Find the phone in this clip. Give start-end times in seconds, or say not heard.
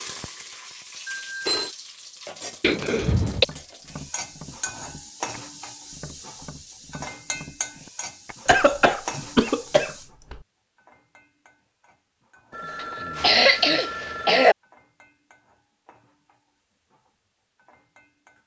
1.1-1.8, 12.5-14.5.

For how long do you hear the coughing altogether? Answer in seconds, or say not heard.
4 s.